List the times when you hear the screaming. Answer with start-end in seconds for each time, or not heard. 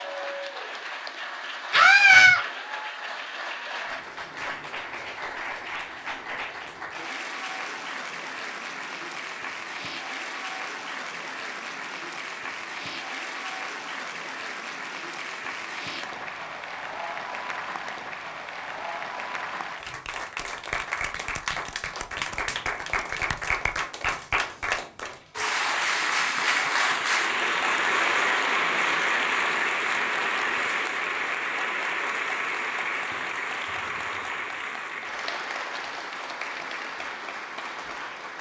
1.7-2.4.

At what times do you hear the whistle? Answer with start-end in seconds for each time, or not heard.
not heard.